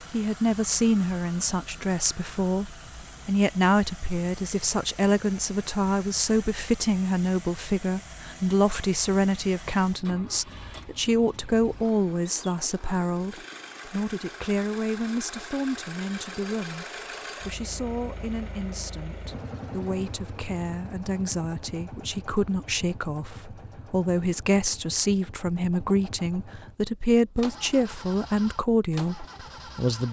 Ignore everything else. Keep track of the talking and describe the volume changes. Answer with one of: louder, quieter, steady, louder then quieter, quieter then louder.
quieter then louder.